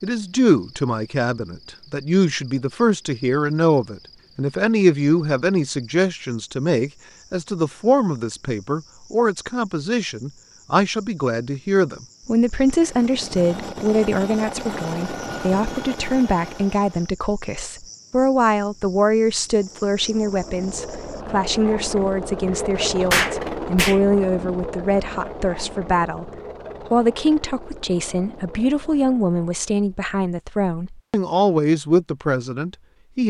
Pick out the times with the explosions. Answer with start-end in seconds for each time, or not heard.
23.1-24.0.